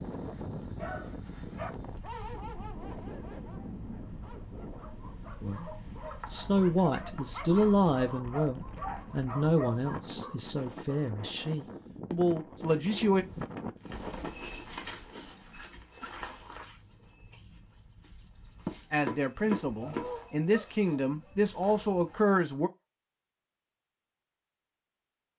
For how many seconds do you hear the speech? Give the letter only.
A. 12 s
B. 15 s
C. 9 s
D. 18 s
A.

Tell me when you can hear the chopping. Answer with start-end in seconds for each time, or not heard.
5.2-7.2, 18.6-20.1.